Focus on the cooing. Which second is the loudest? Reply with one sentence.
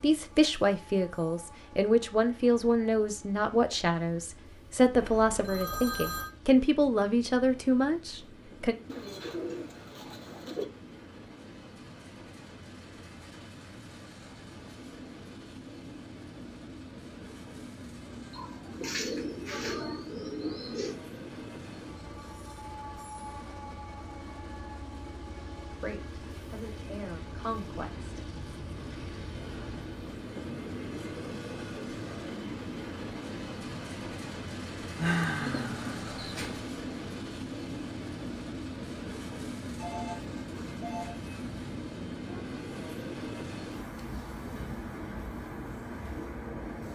The loudest moment of the cooing is at 35 seconds.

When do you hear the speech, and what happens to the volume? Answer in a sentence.
You can hear the speech from 0.0 to 8.8 s, at a steady volume; and briefly from 25.7 to 28.2 s.